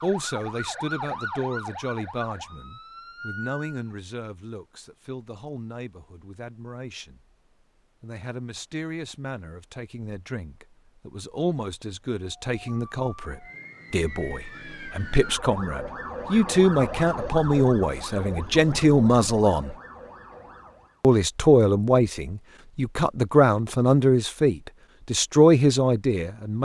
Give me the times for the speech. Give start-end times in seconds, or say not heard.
0.0-7.3, 8.0-19.8, 21.0-26.5.